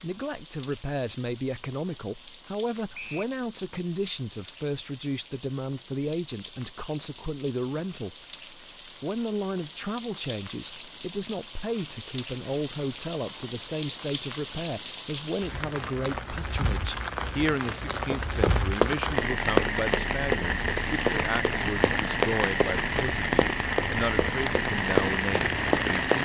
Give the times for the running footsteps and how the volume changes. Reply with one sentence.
You can hear the running footsteps from 18.1 to 26.2 s, getting quieter then louder.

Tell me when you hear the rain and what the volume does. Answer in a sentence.
The rain can be heard from 0.0 to 26.2 s, getting louder.